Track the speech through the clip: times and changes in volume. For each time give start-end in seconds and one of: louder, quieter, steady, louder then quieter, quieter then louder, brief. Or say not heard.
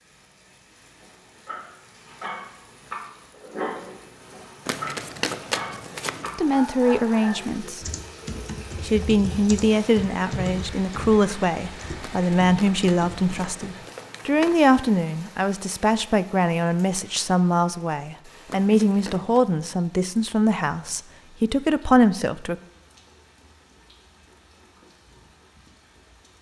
6.3-7.8 brief
8.8-22.6 steady.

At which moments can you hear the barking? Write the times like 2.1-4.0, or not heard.
1.0-7.7.